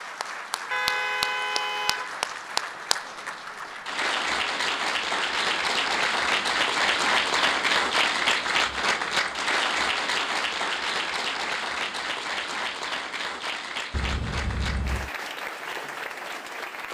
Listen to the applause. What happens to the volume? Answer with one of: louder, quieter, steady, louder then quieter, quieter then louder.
louder then quieter.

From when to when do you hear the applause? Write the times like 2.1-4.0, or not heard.
0.0-16.8.